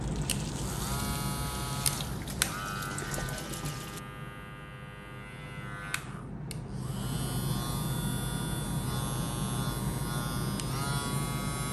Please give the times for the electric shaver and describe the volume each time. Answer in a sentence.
You can hear the electric shaver from 0.0 to 11.6 s, getting quieter then louder.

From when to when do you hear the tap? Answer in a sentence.
The tap can be heard from 0.0 to 4.0 s.